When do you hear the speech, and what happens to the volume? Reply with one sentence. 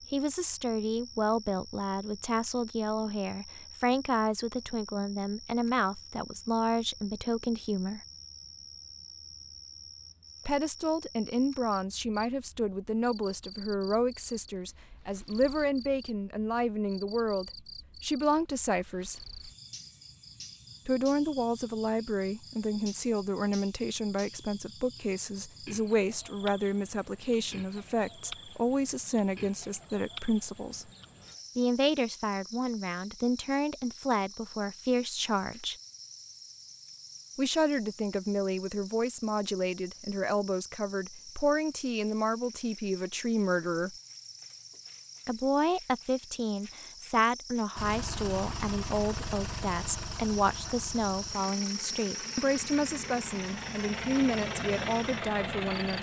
The speech can be heard from 0.1 to 8.0 s, at a steady volume; from 10.4 to 19.2 s, at a steady volume; from 20.9 to 30.9 s, at a steady volume; from 31.6 to 35.8 s, at a steady volume; from 37.4 to 44.0 s, at a steady volume; and from 45.2 to 55.9 s, at a steady volume.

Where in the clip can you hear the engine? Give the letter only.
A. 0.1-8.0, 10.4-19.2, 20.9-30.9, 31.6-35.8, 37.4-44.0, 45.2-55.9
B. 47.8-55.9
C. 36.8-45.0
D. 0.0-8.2
B.